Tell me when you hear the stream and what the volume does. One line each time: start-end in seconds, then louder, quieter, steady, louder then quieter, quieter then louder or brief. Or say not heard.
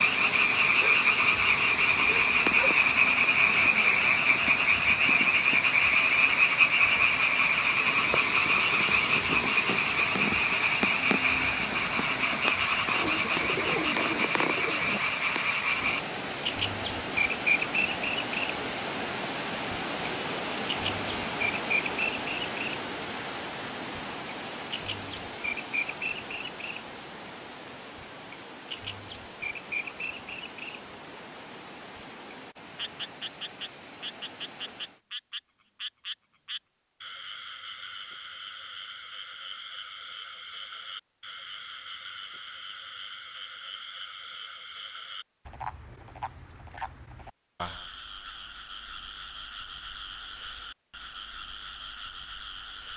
0.0-35.0 quieter.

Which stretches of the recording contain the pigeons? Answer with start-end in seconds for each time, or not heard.
12.9-15.0.